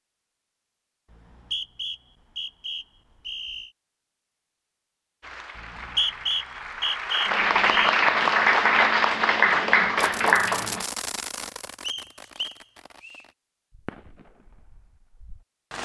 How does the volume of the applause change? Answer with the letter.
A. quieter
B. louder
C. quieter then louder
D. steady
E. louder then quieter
B.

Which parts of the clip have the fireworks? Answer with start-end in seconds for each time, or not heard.
9.9-15.8.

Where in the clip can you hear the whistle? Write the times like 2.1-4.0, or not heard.
1.1-3.7, 5.5-8.0, 11.8-13.2.